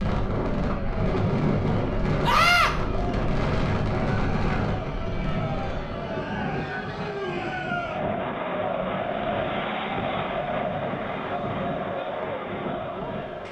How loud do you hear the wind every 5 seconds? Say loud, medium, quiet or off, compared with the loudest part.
loud, medium, medium.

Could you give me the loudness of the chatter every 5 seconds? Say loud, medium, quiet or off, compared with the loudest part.
medium, loud, loud.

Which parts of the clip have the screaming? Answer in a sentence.
The screaming can be heard from 2.2 to 2.7 s.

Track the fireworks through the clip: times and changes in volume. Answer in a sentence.
The fireworks can't be heard in this clip.